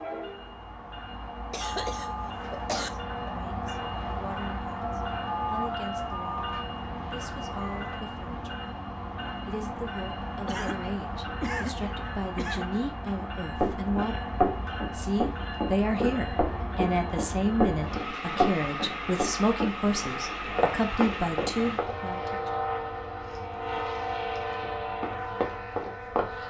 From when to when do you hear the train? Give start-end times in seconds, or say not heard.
0.0-26.4.